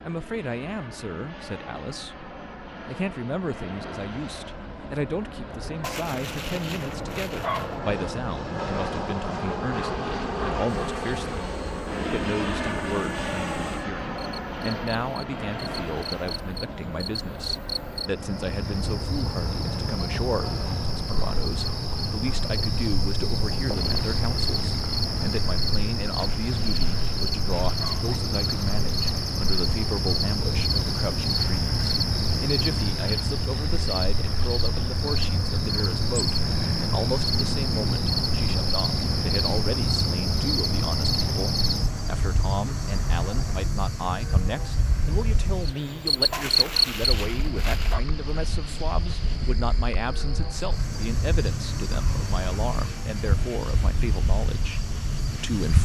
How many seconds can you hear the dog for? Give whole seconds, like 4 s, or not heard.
6 s.